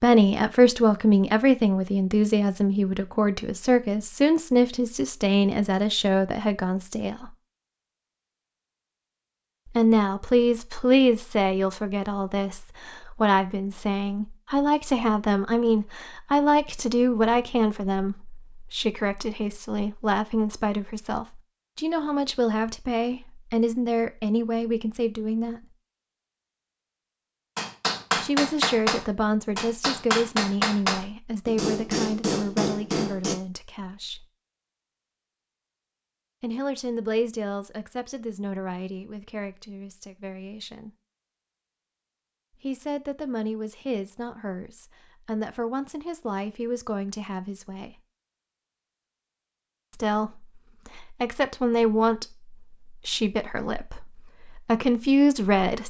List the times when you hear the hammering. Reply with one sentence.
You can hear the hammering from 27.6 to 33.4 s.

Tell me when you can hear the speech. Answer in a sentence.
The speech can be heard from 0.0 to 7.3 s, from 9.7 to 25.6 s, from 28.1 to 34.2 s, from 36.4 to 40.9 s, from 42.6 to 48.0 s and from 49.9 to 55.8 s.